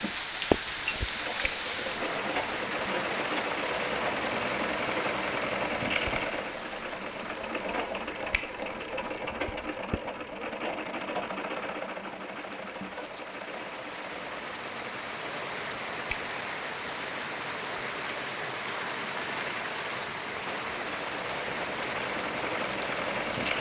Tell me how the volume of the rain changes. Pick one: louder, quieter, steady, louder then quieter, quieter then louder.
quieter then louder.